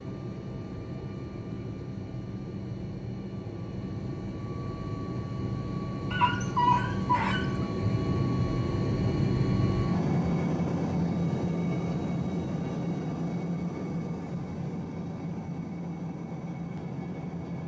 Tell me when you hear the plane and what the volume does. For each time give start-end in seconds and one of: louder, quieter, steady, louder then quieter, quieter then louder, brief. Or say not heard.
0.0-17.6 louder then quieter.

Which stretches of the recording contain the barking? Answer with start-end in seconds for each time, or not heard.
6.1-7.7.